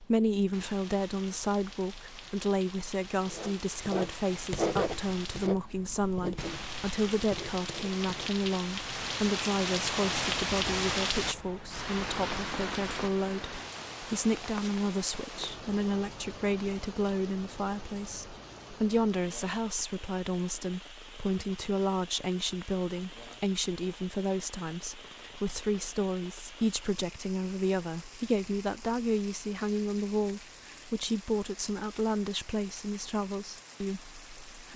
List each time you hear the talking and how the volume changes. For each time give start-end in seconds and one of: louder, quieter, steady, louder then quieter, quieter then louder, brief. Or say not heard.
0.0-34.7 steady.